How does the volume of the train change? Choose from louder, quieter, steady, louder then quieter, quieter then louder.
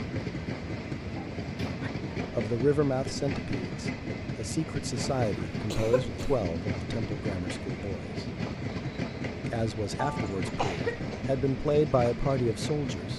steady.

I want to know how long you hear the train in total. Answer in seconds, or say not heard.
13 s.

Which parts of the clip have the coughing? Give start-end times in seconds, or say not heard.
1.1-1.9, 5.7-6.4, 9.9-11.3.